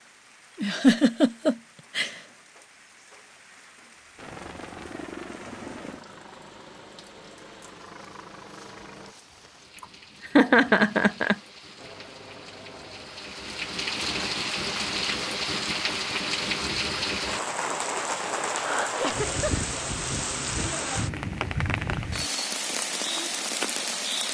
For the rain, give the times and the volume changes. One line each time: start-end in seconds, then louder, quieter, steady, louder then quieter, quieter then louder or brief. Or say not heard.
0.0-24.2 louder.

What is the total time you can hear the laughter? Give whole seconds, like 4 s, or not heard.
4 s.